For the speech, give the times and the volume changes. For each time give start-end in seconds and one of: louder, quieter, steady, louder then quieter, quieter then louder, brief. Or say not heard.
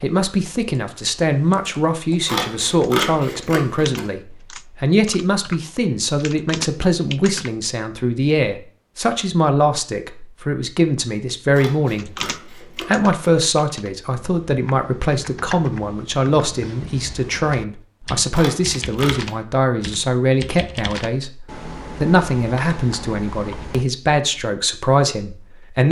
0.0-25.8 steady.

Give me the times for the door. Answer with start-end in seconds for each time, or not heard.
not heard.